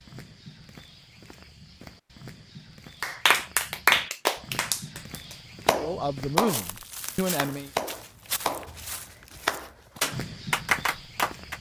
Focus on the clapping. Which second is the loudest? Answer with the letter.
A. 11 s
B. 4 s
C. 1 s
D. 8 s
B.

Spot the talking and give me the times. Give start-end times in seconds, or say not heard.
5.8-7.7.